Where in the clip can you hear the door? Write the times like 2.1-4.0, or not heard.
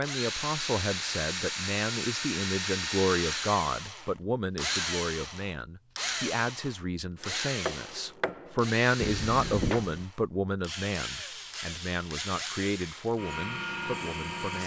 not heard.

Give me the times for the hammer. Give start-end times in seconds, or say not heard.
7.2-10.1.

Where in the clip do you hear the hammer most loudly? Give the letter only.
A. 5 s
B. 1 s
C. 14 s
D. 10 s
D.